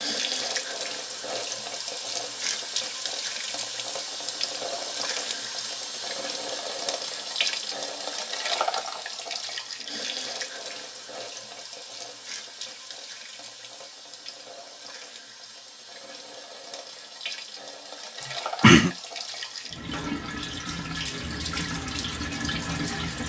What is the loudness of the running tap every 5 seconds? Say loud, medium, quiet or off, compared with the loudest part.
loud, loud, medium, medium, loud.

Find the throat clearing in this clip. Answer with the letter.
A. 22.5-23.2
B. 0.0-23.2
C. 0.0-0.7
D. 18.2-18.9
D.